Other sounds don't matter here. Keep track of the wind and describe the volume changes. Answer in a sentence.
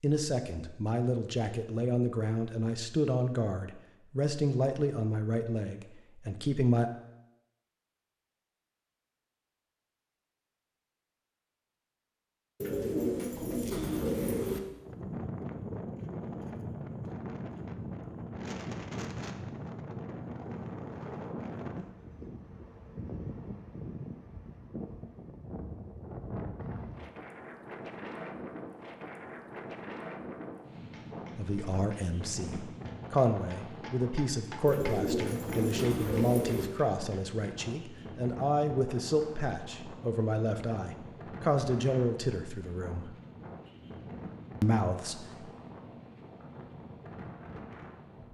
The volume of the wind goes down.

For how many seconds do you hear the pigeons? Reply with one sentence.
You can hear the pigeons for 4 seconds altogether.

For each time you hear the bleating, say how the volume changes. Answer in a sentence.
You can't hear the bleating here.